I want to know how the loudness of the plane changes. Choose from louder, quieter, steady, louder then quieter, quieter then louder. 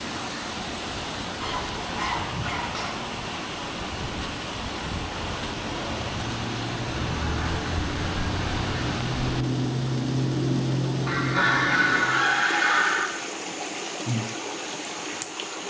louder.